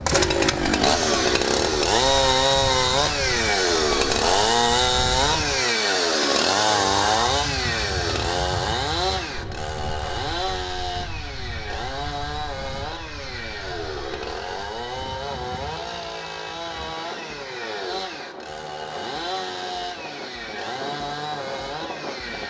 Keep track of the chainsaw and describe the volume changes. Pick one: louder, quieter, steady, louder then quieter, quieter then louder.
quieter.